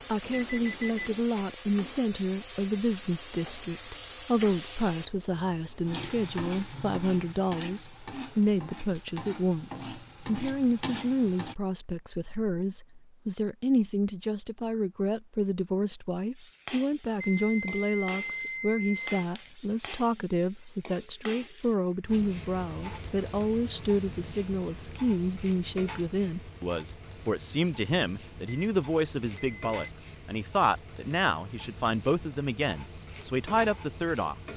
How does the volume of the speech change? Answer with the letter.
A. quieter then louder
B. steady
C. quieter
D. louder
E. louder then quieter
B.